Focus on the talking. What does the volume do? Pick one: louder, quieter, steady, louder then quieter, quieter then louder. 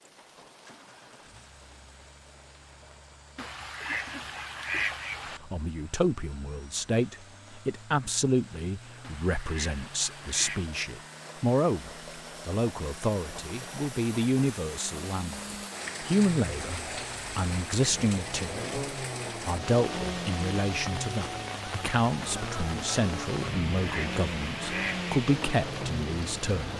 steady.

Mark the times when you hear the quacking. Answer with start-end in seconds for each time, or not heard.
3.4-5.4, 9.0-10.7, 23.4-25.1.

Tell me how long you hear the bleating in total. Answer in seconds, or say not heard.
not heard.